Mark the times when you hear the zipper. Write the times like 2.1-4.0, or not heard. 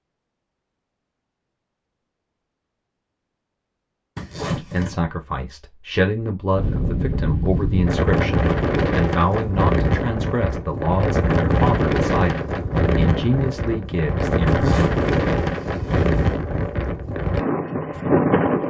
4.2-5.0, 14.4-16.4.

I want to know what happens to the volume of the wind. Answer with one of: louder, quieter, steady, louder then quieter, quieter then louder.
steady.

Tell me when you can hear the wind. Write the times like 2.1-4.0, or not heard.
6.5-18.6.